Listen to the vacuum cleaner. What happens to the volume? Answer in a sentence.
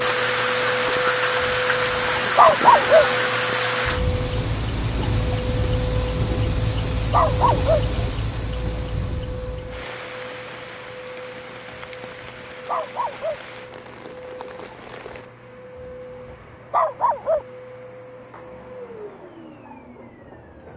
The volume of the vacuum cleaner goes down.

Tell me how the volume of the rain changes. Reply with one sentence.
The volume of the rain goes down.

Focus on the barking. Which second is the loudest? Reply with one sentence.
The loudest moment of the barking is at 3 seconds.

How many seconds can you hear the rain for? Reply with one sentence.
The rain can be heard for 15 seconds in total.